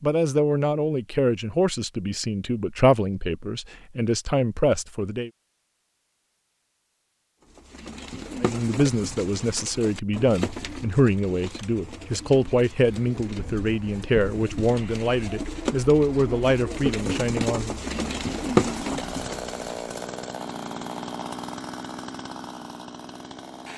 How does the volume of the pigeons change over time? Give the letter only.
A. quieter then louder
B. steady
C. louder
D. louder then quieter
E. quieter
C.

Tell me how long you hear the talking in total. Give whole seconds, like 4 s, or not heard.
15 s.